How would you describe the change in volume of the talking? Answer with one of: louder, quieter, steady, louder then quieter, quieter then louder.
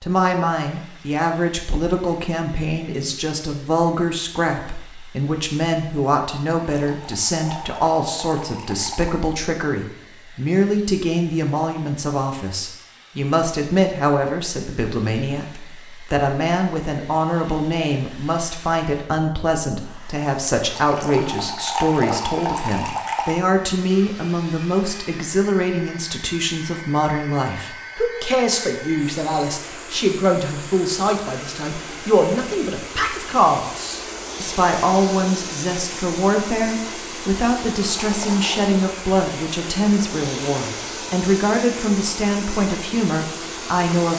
steady.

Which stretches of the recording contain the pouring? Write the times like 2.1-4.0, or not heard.
6.5-9.2, 20.8-23.4, 38.0-38.5.